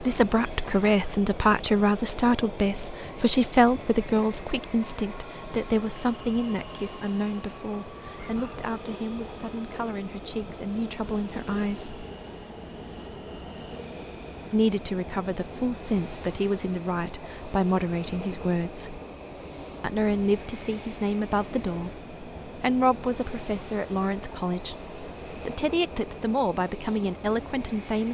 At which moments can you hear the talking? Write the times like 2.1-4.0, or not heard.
0.0-12.1, 14.5-19.0, 19.8-28.0.